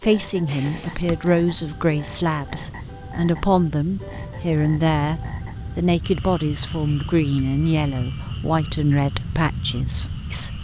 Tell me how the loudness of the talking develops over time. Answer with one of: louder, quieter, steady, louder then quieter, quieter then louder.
steady.